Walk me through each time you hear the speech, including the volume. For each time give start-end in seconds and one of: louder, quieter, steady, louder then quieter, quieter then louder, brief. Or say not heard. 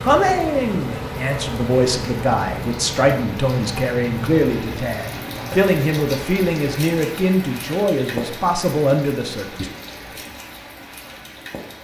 0.0-9.7 steady.